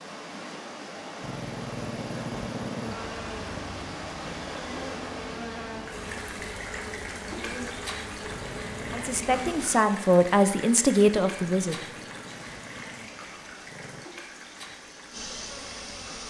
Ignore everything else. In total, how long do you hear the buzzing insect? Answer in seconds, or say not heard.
11 s.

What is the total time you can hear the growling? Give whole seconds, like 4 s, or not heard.
6 s.